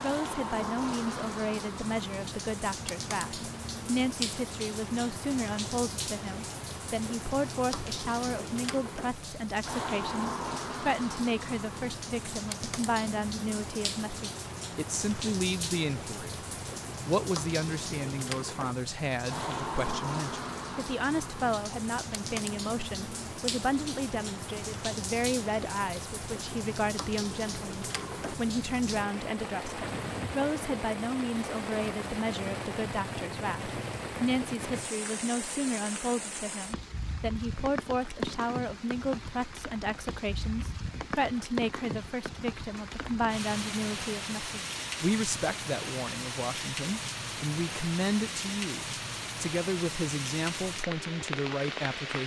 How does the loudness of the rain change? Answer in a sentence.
The loudness of the rain stays about the same.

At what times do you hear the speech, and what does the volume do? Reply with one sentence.
The speech can be heard from 0.0 to 16.4 s, at a steady volume; and from 17.1 to 52.2 s, at a steady volume.